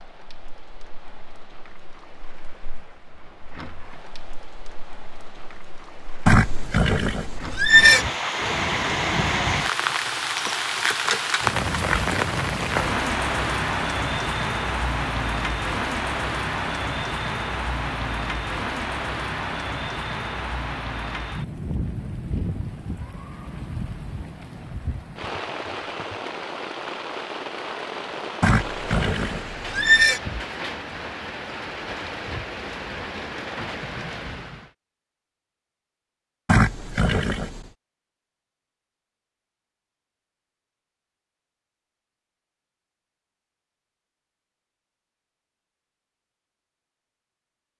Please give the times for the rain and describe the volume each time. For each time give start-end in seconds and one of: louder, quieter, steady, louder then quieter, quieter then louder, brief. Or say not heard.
0.0-34.7 louder then quieter.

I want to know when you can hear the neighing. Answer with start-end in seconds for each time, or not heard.
6.2-8.1, 28.4-30.2, 36.5-37.6.